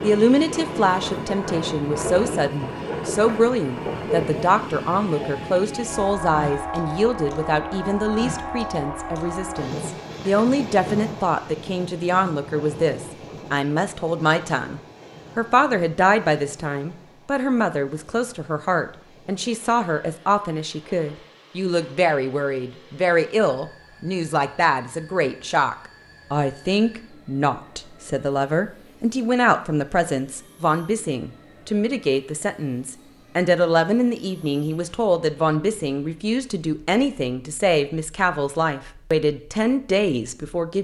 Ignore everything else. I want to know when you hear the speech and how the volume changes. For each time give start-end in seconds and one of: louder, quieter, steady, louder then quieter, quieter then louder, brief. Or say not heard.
0.0-40.7 steady.